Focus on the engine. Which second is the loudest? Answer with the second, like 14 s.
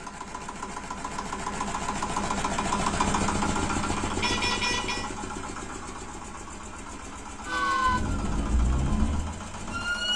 3 s.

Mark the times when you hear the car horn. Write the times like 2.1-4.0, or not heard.
4.2-5.0.